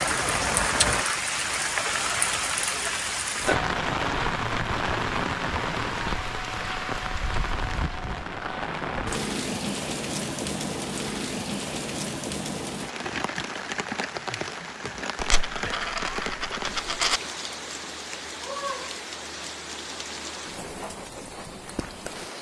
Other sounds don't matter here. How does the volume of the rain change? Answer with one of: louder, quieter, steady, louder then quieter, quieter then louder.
quieter.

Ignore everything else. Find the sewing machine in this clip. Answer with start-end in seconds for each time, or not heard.
not heard.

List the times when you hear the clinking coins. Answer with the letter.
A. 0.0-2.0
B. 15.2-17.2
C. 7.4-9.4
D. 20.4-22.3
B.